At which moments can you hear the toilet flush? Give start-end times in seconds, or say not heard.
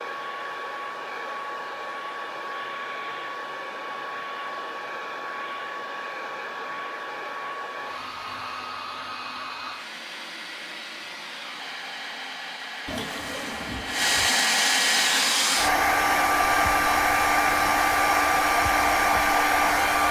12.8-14.4.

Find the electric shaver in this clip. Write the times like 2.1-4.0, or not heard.
not heard.